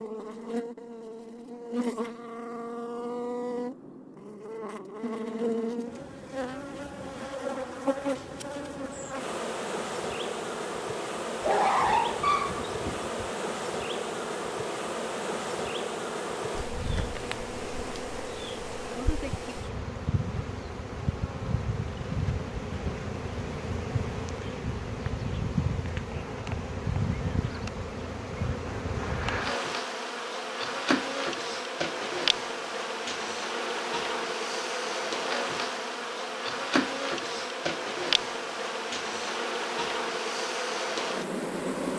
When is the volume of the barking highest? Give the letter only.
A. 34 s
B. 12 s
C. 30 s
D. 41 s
B.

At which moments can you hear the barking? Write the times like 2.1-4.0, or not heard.
11.4-13.2.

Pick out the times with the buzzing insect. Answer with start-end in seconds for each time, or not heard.
0.0-41.9.